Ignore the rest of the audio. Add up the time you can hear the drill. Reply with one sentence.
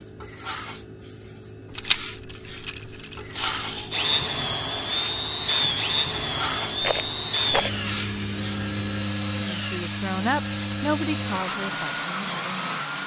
The drill can be heard for 10 seconds in total.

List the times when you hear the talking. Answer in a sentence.
You can hear the talking from 9.6 to 13.0 s.